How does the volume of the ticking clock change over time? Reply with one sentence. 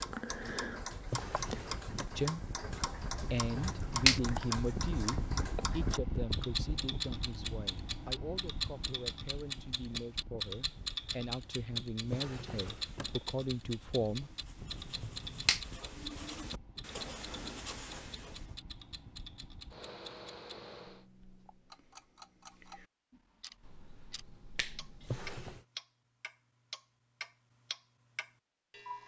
The volume of the ticking clock goes down.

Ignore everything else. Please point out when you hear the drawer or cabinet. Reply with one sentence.
You can hear the drawer or cabinet from 1.0 to 2.2 s, from 12.0 to 13.2 s and from 25.0 to 25.6 s.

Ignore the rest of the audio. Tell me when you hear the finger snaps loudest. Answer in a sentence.
The loudest moment of the finger snaps is at 4 seconds.